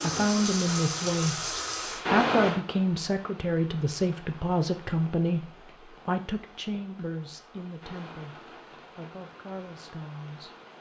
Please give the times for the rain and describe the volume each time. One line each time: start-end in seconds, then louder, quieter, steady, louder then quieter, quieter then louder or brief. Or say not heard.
0.0-10.7 quieter.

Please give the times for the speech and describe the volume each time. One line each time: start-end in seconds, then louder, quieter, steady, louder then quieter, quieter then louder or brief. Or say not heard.
0.0-10.5 quieter.